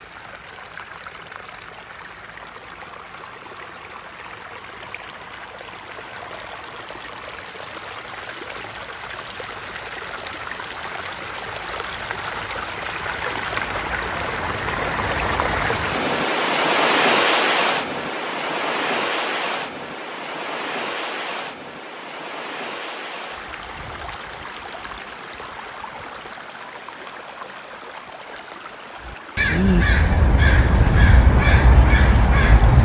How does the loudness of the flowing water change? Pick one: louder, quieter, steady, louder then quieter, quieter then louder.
louder then quieter.